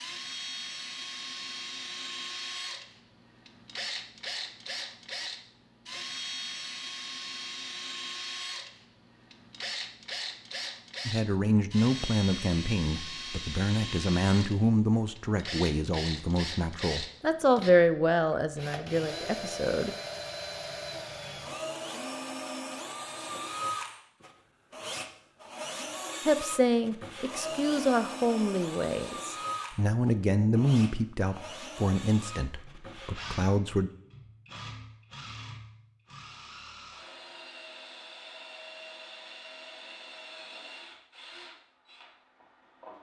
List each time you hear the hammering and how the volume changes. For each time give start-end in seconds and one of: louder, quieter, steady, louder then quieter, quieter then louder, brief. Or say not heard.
not heard.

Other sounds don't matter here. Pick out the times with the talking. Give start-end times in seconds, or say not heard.
11.1-19.9, 26.2-33.9.